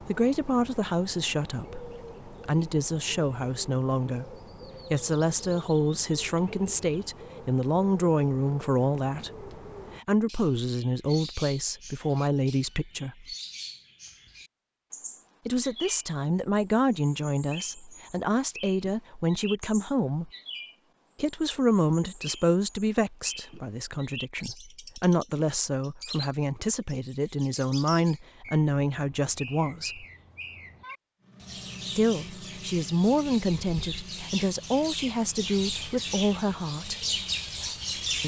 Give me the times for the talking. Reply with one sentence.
You can hear the talking from 0.1 to 13.2 s, from 15.4 to 20.3 s, from 21.1 to 30.1 s and from 31.9 to 37.0 s.